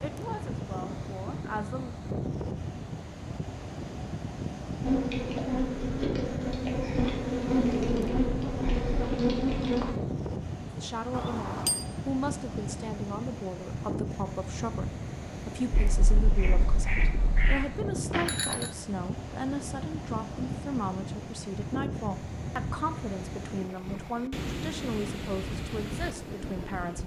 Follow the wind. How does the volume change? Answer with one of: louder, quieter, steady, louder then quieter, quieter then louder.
steady.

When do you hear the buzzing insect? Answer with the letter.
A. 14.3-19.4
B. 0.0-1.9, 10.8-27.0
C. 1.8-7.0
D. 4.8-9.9
D.